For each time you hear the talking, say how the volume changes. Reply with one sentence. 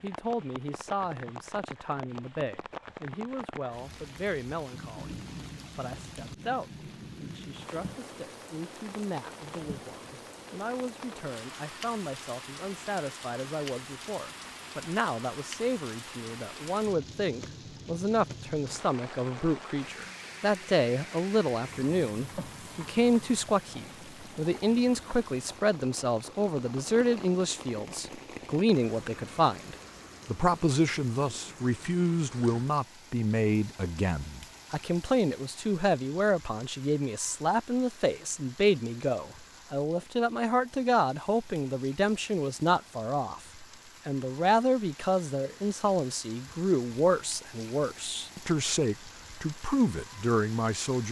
The talking can be heard from 0.0 to 51.0 s, getting louder.